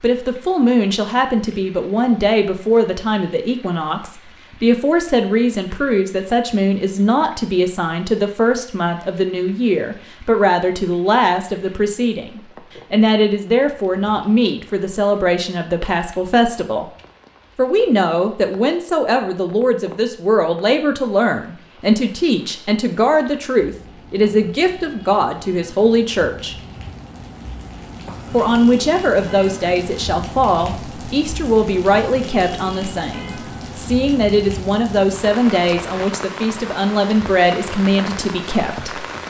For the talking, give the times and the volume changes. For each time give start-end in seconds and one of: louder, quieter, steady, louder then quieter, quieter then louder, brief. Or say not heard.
0.0-16.9 steady
17.6-26.6 steady
28.3-39.0 steady.